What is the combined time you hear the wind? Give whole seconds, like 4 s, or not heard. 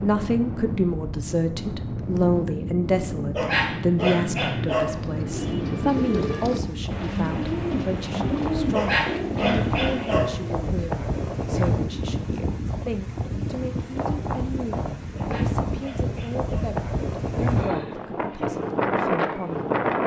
20 s.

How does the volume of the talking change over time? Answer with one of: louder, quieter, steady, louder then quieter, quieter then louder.
quieter.